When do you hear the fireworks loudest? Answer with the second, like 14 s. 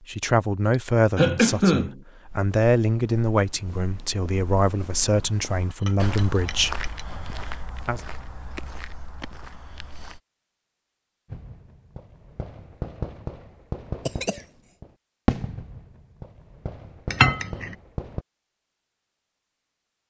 15 s.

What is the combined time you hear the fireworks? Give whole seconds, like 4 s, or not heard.
7 s.